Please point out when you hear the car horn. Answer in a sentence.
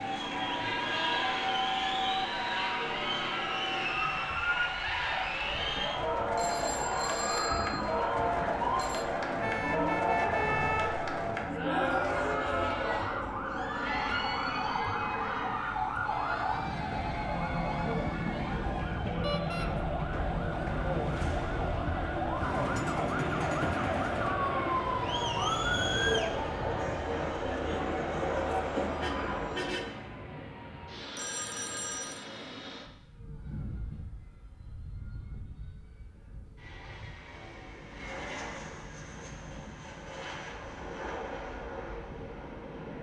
The car horn can be heard from 9.4 to 11.0 s, from 19.2 to 19.7 s and from 29.0 to 30.1 s.